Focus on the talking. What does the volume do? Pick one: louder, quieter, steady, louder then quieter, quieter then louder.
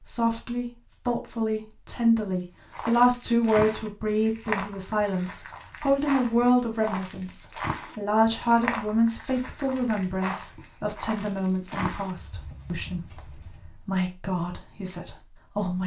quieter.